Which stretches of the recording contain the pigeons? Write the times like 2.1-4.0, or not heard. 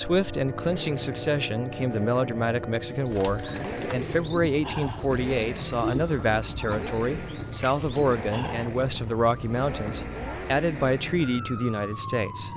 2.9-8.4.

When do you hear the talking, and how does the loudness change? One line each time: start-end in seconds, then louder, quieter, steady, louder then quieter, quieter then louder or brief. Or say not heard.
0.0-12.5 steady.